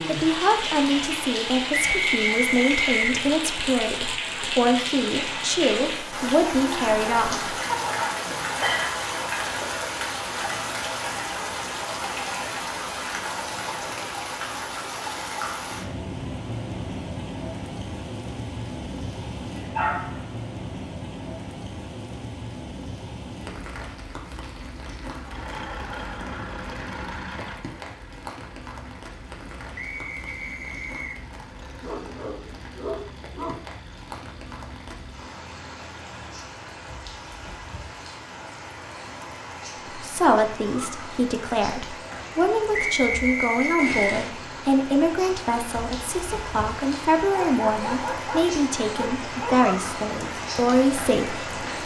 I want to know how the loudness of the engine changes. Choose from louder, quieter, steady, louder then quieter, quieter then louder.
quieter.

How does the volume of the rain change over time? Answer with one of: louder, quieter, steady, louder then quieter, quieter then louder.
quieter then louder.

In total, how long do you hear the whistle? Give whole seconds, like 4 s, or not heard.
4 s.